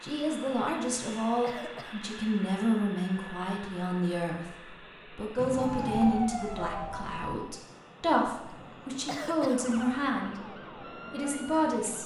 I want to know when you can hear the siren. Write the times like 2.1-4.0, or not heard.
5.6-7.4, 9.5-12.0.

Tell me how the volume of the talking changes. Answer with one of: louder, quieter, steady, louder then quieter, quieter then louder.
steady.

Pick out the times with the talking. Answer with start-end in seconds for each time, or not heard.
0.0-12.0.